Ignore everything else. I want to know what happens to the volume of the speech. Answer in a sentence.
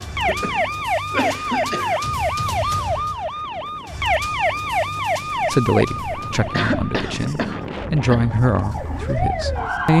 The volume of the speech goes up, then down.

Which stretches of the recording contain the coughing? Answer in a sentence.
You can hear the coughing from 0.2 to 2.0 s and from 6.5 to 8.3 s.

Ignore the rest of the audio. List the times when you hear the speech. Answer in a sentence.
The speech can be heard from 5.5 to 9.9 s.